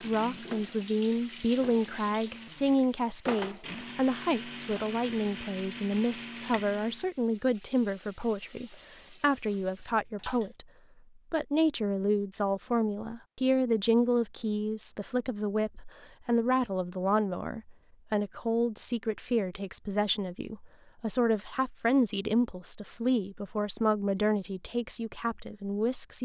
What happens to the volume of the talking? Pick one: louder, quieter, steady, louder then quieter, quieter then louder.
steady.